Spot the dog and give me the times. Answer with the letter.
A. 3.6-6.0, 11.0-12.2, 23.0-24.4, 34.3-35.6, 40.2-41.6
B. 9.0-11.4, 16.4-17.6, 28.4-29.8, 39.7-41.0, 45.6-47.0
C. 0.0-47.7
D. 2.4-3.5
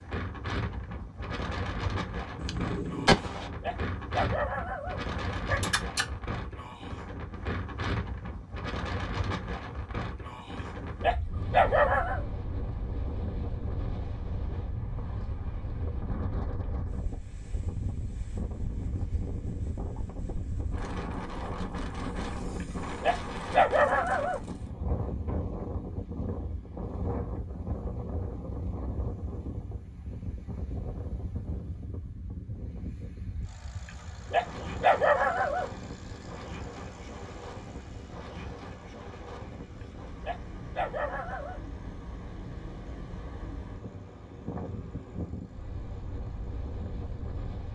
A.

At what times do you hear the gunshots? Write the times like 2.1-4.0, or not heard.
2.4-3.5.